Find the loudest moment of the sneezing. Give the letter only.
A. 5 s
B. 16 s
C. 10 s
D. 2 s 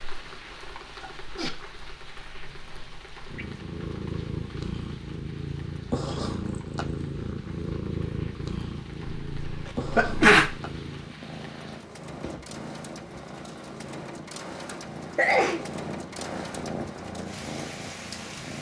C.